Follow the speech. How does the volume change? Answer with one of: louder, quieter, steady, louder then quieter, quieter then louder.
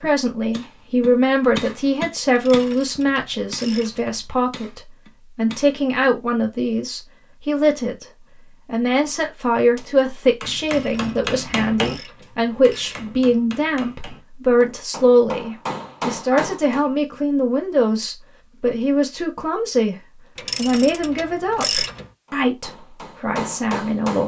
steady.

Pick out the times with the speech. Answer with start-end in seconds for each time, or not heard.
0.0-8.1, 8.7-19.9, 20.6-24.2.